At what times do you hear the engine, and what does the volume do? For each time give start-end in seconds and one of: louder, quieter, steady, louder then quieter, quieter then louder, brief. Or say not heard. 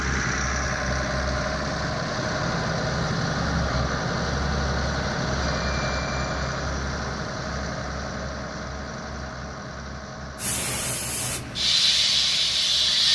0.0-13.1 quieter.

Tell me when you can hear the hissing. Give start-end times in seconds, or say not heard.
10.3-13.1.